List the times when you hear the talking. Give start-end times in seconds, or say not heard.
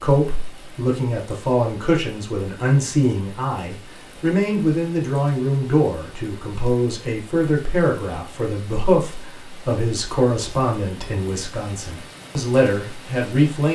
0.0-13.7.